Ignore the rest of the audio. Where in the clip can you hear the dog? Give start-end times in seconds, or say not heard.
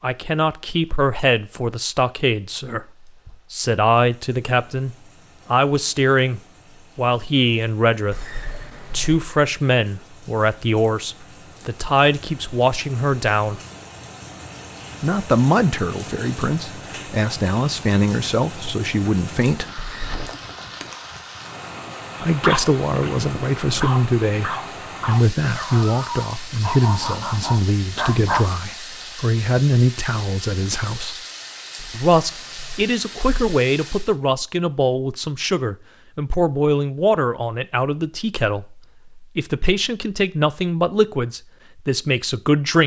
22.3-28.4.